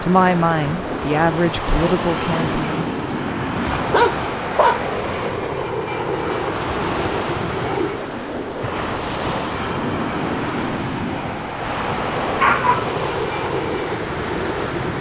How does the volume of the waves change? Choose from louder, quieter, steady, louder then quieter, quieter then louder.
steady.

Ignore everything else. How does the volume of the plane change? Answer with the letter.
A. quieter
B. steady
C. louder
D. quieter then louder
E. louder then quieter
B.